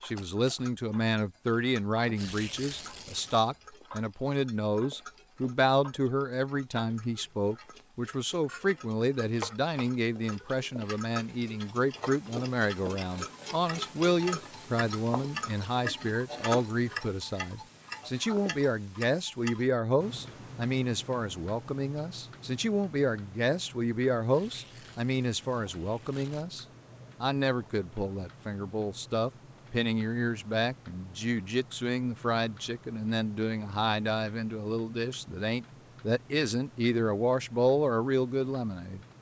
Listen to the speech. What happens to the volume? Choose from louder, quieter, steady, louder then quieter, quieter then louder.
steady.